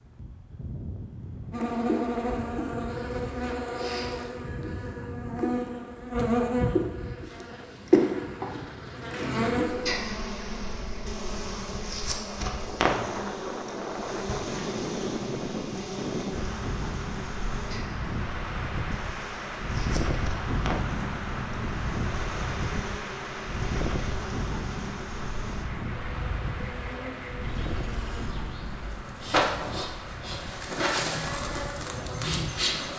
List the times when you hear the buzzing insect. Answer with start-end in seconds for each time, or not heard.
1.5-32.9.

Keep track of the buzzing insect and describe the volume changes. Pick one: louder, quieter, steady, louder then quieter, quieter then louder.
quieter then louder.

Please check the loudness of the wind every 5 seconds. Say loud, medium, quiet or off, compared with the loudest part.
medium, medium, medium, loud, loud, medium, medium.